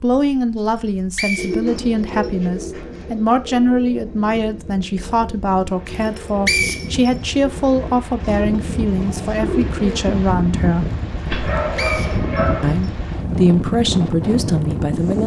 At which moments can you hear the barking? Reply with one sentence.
You can hear the barking from 11.2 to 12.8 s.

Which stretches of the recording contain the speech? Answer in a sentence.
You can hear the speech from 0.0 to 10.9 s and from 12.6 to 15.2 s.